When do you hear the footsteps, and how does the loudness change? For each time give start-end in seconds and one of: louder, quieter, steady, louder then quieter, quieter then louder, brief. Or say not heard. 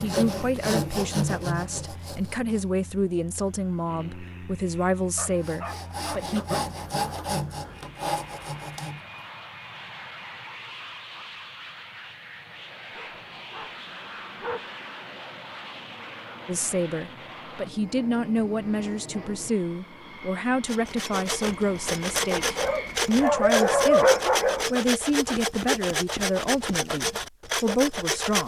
not heard.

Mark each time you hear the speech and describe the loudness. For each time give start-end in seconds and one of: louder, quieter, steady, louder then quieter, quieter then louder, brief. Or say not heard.
0.0-6.5 steady
16.4-28.4 steady.